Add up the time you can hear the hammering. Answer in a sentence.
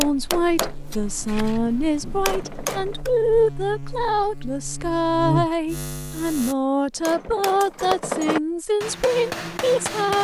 You can hear the hammering for 6 seconds altogether.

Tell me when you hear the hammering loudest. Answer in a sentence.
The volume of the hammering peaks at 8 seconds.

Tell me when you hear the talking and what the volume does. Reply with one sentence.
You can hear the talking from 0.0 to 10.1 s, at a steady volume.